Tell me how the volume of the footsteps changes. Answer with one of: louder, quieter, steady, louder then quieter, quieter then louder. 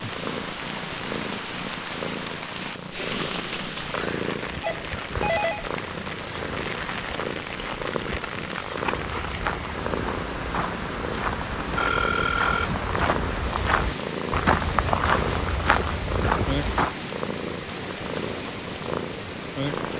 louder.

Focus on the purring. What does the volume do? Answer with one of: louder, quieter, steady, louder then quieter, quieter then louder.
steady.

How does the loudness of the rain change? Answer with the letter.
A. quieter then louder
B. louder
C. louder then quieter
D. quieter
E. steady
E.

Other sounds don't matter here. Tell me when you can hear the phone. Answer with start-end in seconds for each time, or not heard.
4.6-5.7, 11.8-12.7.